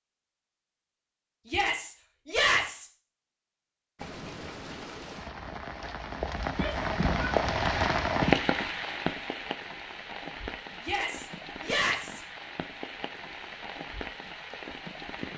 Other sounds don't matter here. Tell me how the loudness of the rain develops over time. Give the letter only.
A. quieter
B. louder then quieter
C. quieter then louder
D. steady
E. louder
B.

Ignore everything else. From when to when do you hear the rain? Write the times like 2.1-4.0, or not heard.
4.0-15.3.